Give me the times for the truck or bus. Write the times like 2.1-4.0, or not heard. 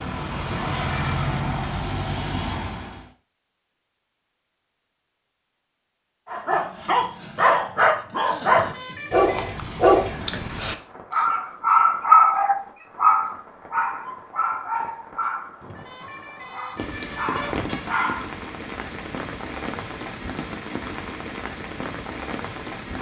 0.0-3.1.